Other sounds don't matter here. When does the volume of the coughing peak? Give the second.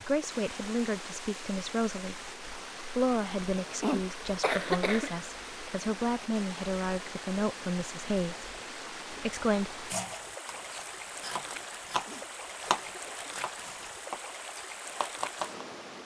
5 s.